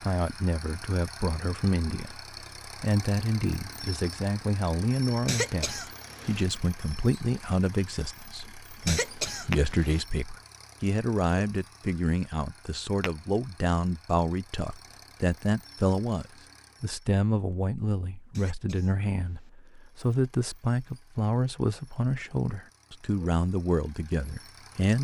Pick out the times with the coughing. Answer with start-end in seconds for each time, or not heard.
5.2-6.5, 8.8-10.1, 18.3-19.5.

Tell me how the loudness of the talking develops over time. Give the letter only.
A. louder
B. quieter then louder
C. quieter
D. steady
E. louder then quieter
D.